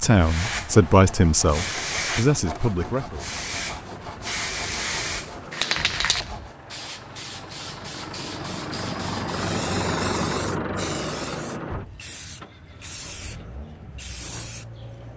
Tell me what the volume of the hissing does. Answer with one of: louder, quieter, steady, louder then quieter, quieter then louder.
quieter.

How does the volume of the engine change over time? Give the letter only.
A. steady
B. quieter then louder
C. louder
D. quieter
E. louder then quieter
E.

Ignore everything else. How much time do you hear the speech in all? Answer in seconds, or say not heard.
3 s.